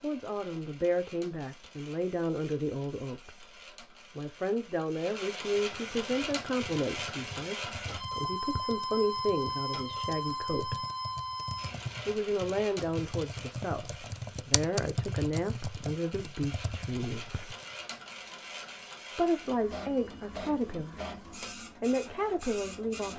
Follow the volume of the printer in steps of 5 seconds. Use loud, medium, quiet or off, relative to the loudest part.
quiet, loud, loud, medium, medium.